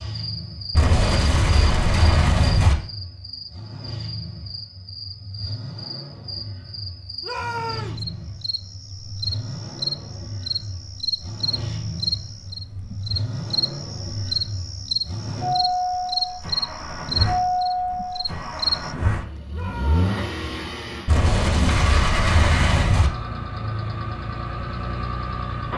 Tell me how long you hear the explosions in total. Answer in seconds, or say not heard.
4 s.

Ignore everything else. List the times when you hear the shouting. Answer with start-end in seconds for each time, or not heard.
7.2-8.1, 19.5-20.1.